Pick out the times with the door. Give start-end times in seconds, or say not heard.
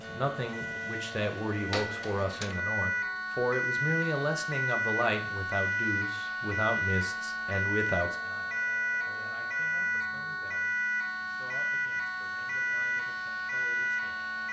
1.7-2.5.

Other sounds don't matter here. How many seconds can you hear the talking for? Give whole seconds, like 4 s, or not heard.
14 s.